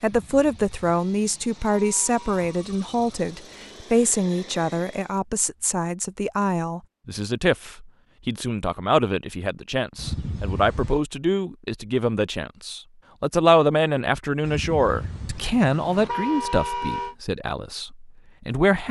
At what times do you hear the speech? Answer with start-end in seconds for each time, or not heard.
0.0-18.8.